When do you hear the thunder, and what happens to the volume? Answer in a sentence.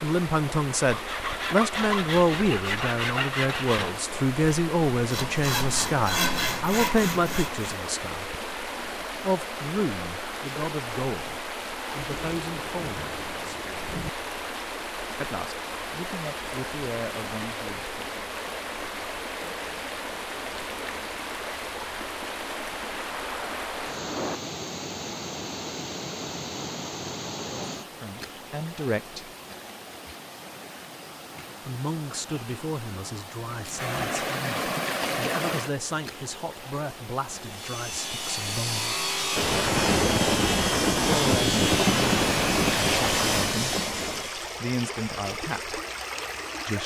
You can hear the thunder briefly from 12.1 to 14.1 s; briefly from 22.9 to 24.4 s; and from 39.4 to 44.3 s, getting quieter.